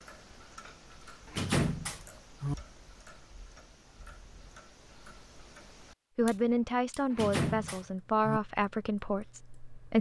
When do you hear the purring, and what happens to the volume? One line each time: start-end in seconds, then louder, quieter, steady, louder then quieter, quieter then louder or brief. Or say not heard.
not heard.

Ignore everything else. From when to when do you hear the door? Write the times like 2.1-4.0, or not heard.
1.3-2.5, 7.1-8.4.